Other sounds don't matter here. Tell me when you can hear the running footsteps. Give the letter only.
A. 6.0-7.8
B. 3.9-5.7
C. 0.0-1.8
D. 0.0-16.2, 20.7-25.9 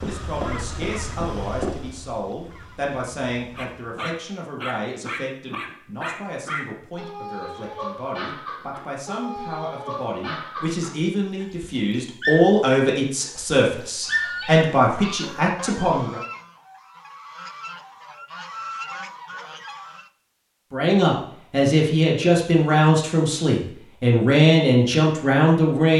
C.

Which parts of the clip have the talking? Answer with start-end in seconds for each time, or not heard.
0.0-16.2, 20.7-25.9.